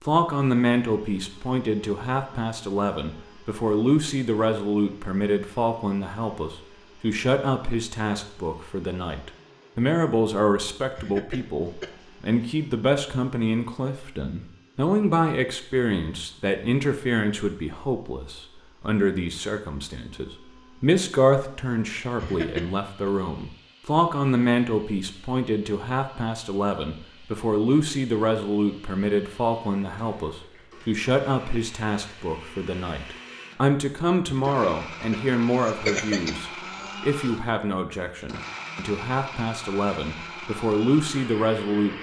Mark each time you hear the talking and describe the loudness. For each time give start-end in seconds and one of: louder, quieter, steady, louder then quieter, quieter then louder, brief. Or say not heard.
0.0-41.9 steady.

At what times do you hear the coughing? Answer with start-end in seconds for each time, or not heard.
10.9-11.9, 22.2-23.1, 34.2-37.0.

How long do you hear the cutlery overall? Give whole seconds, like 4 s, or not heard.
not heard.